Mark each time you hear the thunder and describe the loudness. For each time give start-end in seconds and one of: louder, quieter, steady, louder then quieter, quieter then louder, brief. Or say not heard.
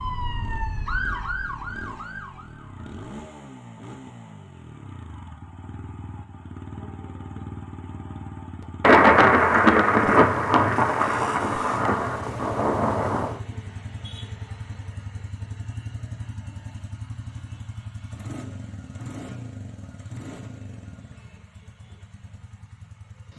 8.8-13.3 quieter.